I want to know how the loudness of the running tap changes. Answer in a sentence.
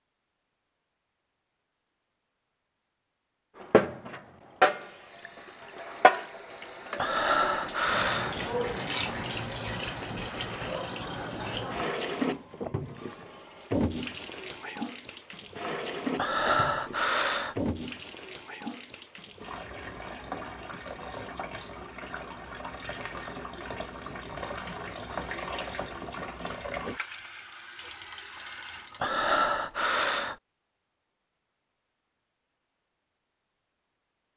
The loudness of the running tap goes down.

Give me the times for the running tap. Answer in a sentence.
The running tap can be heard from 3.5 to 29.9 s.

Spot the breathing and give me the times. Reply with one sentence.
The breathing can be heard from 7.0 to 8.3 s, from 16.1 to 17.6 s and from 29.0 to 30.4 s.